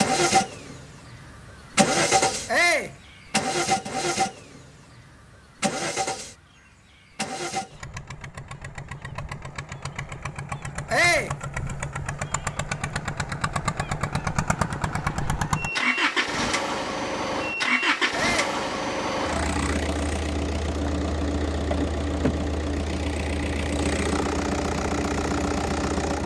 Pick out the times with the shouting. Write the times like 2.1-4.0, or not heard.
2.5-3.0, 10.9-11.3, 18.1-18.6.